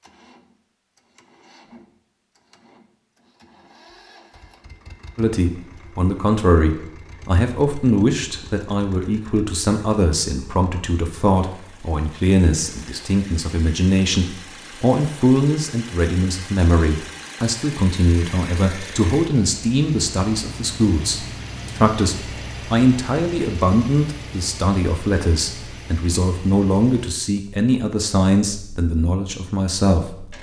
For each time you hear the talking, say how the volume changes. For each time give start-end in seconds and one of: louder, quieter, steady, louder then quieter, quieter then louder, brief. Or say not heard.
5.2-30.3 steady.